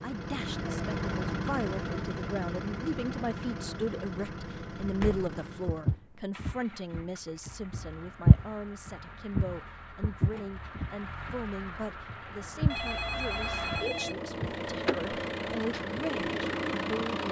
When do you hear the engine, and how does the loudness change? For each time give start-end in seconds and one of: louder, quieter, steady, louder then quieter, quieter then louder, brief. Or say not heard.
0.0-17.2 quieter then louder.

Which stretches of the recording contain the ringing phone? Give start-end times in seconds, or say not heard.
12.7-14.2.